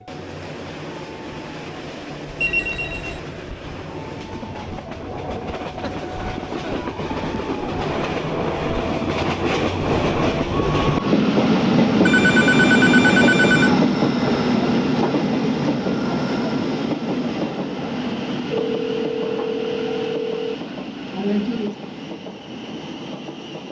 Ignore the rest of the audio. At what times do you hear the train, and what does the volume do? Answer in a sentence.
The train can be heard from 0.0 to 23.6 s, getting louder then quieter.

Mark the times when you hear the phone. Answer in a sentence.
The phone can be heard from 2.4 to 3.2 s, from 12.1 to 13.8 s and from 18.5 to 20.6 s.